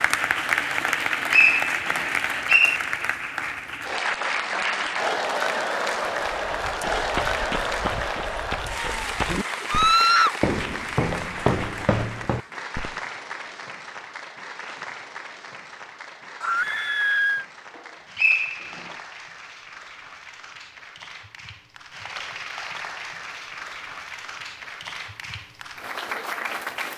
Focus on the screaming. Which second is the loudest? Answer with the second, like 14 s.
10 s.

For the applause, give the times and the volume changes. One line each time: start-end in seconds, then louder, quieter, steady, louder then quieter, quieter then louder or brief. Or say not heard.
0.0-26.9 quieter then louder.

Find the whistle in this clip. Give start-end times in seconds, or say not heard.
1.3-2.8, 17.8-18.9.